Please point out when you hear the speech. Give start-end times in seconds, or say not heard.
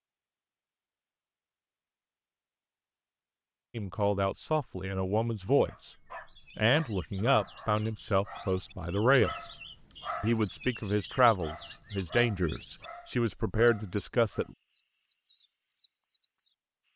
3.8-6.0, 6.5-9.5, 10.2-14.6.